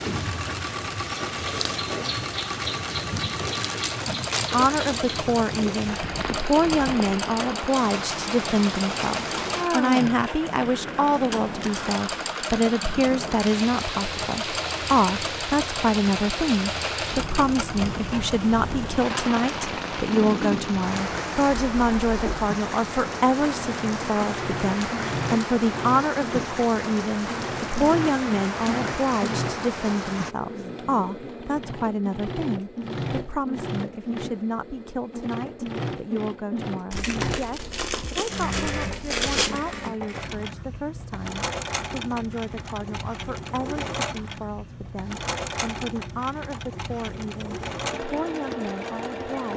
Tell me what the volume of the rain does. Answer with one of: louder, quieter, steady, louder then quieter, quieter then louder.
steady.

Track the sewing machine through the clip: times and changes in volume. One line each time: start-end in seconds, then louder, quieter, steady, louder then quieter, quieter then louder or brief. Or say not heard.
0.0-49.5 steady.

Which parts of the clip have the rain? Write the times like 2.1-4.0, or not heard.
0.0-30.4.